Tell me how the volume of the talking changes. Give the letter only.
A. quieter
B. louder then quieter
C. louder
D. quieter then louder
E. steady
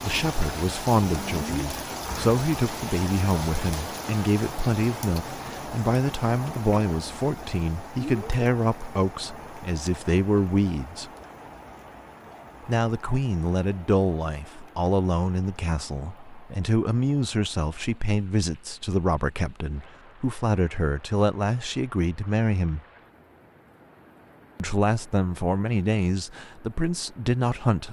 E.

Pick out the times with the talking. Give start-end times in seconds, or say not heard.
0.0-11.1, 12.7-22.8, 24.6-27.8.